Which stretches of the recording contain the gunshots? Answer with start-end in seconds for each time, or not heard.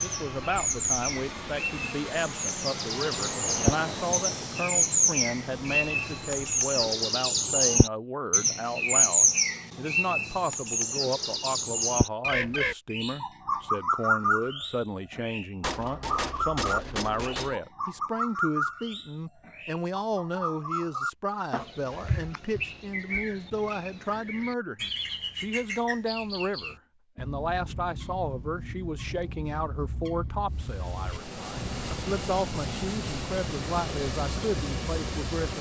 15.6-17.6.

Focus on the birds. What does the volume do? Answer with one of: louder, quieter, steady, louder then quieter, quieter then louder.
quieter.